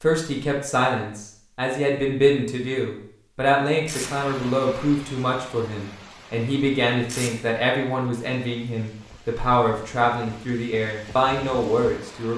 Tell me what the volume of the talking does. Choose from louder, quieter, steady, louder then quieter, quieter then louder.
steady.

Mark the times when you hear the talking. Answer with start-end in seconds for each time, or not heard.
0.0-12.3.